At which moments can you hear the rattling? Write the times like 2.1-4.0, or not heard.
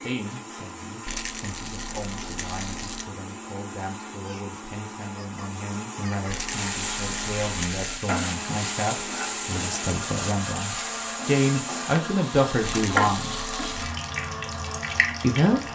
1.1-3.0, 6.3-8.1, 12.7-13.9.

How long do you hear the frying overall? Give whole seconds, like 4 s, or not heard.
9 s.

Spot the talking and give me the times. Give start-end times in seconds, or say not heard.
0.0-13.4, 15.2-15.6.